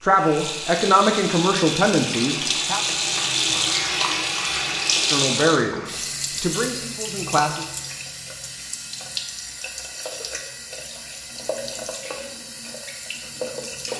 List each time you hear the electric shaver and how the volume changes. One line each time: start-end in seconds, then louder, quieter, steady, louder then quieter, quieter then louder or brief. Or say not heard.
not heard.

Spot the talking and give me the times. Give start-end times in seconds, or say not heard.
0.0-2.8, 5.0-7.7.